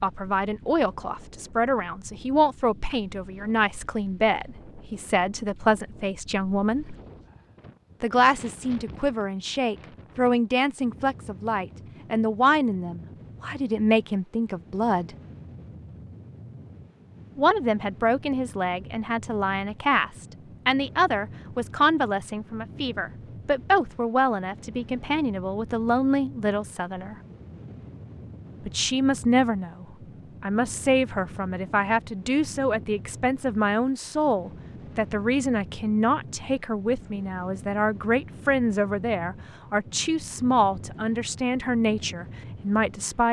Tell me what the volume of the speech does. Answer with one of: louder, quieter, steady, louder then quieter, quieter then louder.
steady.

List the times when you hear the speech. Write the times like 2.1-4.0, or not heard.
0.0-7.0, 8.0-15.1, 17.4-27.1, 28.6-43.2.